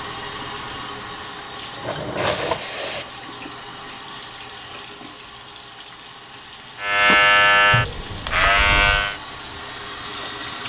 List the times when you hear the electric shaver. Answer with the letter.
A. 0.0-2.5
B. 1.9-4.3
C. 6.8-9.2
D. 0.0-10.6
C.